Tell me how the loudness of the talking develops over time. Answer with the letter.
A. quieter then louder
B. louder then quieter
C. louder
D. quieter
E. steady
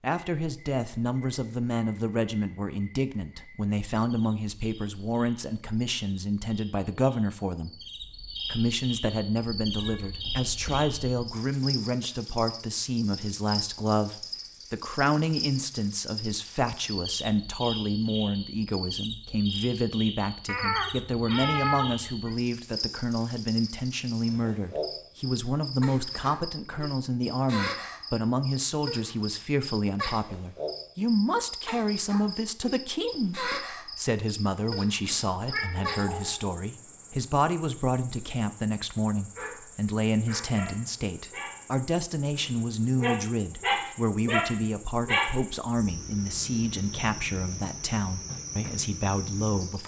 E.